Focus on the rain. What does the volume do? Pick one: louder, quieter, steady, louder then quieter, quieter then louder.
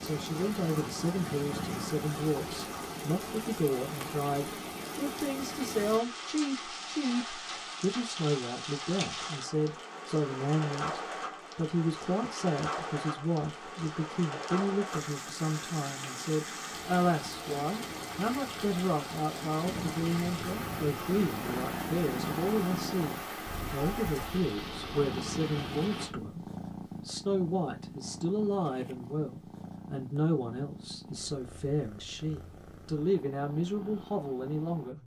steady.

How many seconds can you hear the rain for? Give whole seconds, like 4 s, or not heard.
26 s.